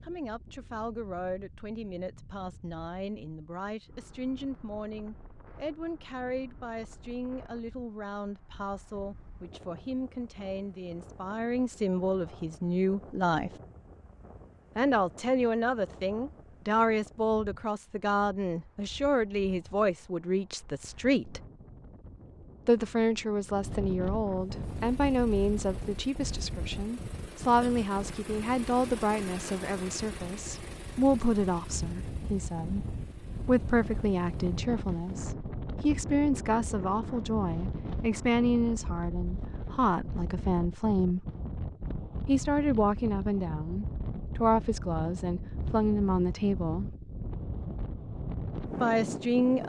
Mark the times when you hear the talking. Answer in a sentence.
You can hear the talking from 0.1 to 13.5 s, from 14.8 to 21.4 s, from 22.6 to 41.2 s, from 42.2 to 47.0 s and from 48.8 to 49.6 s.